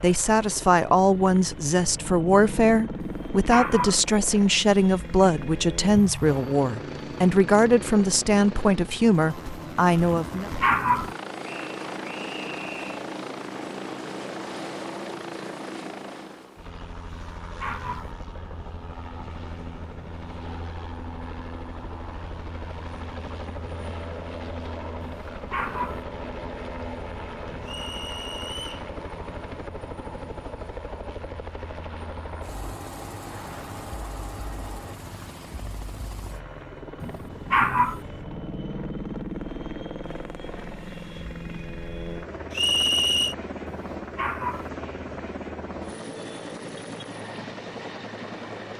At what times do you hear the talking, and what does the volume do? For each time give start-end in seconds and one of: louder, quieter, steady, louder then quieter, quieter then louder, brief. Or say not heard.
0.0-10.5 steady.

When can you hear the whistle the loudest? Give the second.
43 s.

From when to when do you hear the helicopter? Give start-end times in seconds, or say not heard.
0.0-48.7.